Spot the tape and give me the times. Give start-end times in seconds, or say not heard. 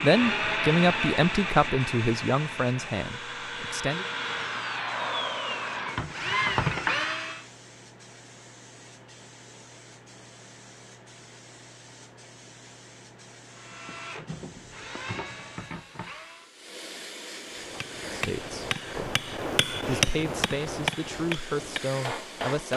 not heard.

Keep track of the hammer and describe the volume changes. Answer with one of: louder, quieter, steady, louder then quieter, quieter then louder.
louder then quieter.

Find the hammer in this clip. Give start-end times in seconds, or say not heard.
17.5-22.7.